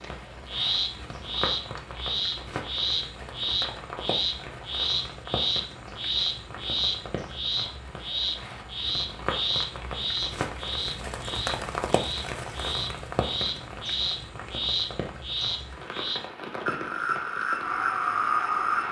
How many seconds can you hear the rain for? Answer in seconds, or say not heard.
19 s.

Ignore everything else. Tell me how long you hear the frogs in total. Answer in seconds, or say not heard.
19 s.